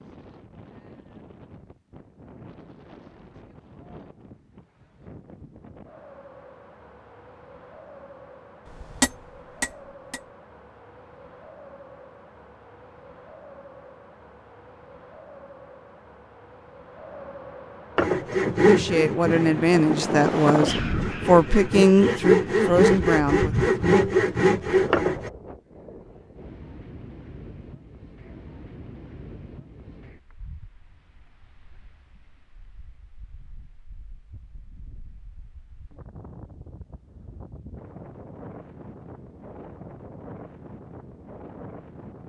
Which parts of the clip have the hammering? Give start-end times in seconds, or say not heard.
8.7-10.2.